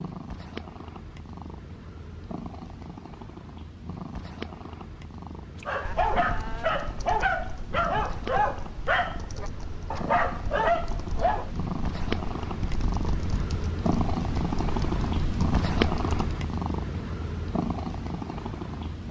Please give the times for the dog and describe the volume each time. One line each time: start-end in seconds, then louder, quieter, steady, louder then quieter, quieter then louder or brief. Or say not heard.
5.7-11.5 quieter then louder.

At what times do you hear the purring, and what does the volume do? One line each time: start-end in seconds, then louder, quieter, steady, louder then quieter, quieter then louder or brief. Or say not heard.
0.0-19.0 louder.